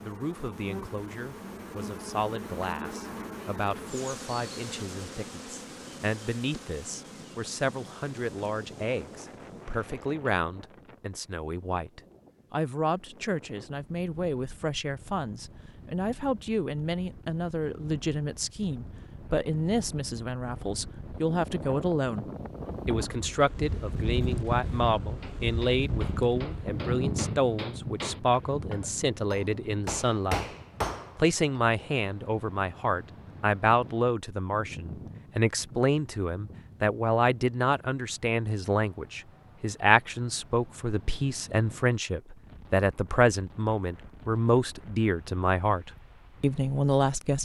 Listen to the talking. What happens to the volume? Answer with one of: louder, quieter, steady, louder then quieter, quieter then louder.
louder.